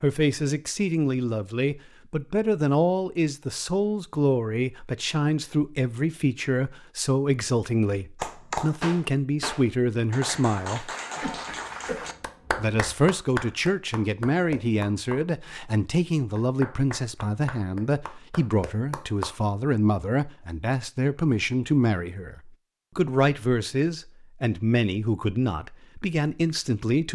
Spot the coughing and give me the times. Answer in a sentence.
The coughing can be heard from 11.2 to 12.7 s.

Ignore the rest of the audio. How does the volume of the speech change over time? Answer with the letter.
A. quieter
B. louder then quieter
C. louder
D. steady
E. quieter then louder
D.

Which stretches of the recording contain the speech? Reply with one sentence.
The speech can be heard from 0.0 to 10.9 s and from 12.6 to 27.1 s.